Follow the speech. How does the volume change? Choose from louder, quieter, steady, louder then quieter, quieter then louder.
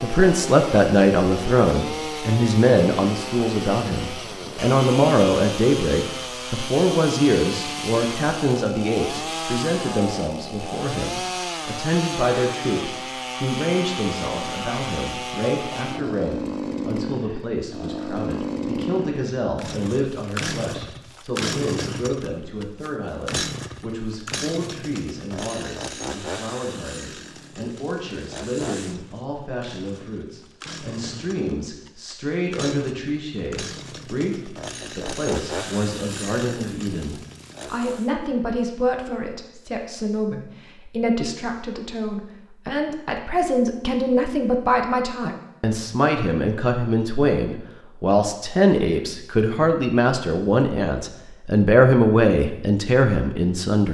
quieter then louder.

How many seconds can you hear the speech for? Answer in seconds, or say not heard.
54 s.